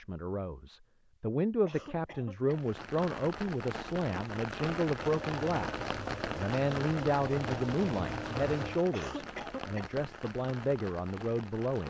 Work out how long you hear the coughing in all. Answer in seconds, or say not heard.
2 s.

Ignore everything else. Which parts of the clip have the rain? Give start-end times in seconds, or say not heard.
2.5-11.8.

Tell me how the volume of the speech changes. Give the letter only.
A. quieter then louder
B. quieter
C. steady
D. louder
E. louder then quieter
C.